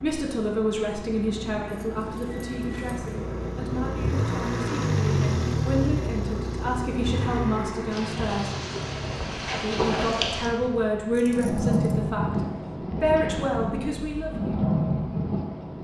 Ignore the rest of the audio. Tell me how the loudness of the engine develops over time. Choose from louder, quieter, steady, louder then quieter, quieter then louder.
louder then quieter.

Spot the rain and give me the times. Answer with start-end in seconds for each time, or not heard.
7.9-15.7.